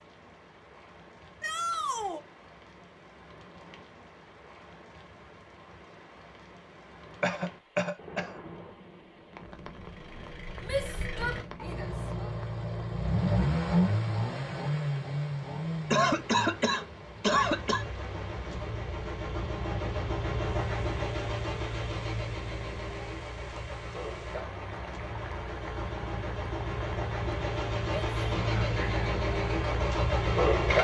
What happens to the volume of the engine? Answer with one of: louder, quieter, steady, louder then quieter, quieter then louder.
quieter then louder.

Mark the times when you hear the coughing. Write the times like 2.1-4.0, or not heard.
7.2-8.3, 15.9-17.9.